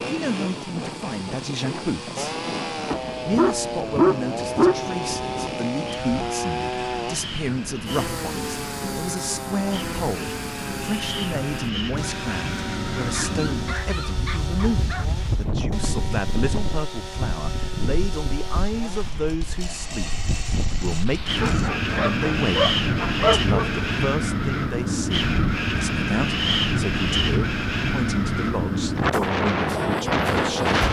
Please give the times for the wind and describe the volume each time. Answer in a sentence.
The wind can be heard from 0.0 to 30.8 s, getting louder.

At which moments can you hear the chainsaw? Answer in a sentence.
You can hear the chainsaw from 0.0 to 21.7 s.